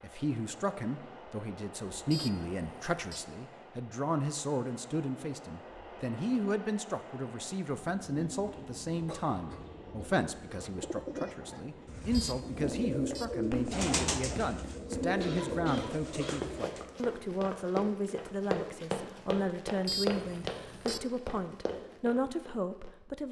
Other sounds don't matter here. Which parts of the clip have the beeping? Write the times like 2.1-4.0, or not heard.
2.1-3.2, 12.1-13.2, 19.9-21.0.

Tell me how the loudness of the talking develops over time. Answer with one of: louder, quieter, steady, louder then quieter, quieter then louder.
steady.